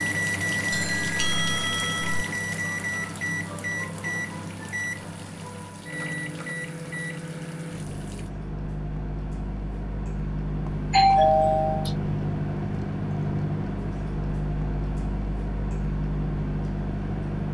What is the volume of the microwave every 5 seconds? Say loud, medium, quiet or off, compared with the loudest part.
loud, medium, loud, loud.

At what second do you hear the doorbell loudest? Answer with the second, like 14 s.
11 s.